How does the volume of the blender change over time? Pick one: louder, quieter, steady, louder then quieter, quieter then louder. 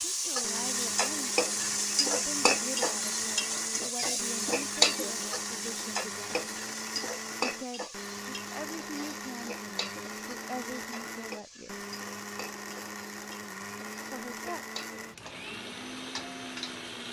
steady.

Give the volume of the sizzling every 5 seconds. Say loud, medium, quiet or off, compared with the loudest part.
loud, medium, quiet, quiet.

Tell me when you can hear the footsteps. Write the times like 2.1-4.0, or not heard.
not heard.